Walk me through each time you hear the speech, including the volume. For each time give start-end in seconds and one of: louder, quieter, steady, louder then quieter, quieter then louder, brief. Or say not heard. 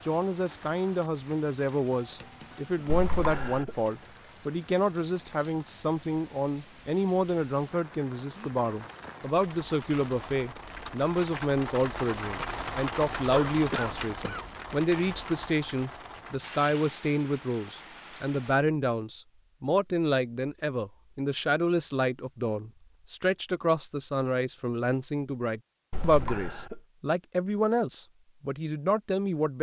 0.0-29.5 steady.